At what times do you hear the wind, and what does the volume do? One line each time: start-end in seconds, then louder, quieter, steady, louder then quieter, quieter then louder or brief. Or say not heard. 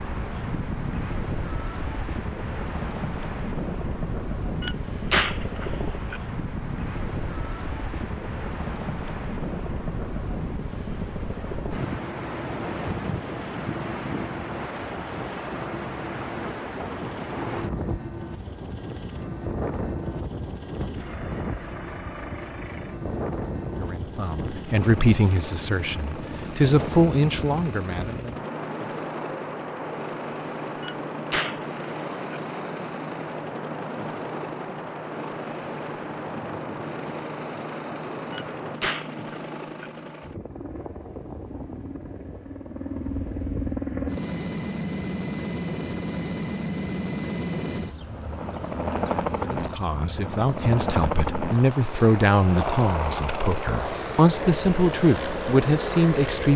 0.0-38.8 steady.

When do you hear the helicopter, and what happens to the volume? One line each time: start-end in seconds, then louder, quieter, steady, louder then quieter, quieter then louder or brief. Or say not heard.
0.0-56.5 louder.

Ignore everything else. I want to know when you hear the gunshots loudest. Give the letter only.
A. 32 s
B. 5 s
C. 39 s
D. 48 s
B.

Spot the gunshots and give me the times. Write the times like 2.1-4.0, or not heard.
4.6-6.2, 30.8-32.4, 38.3-39.9.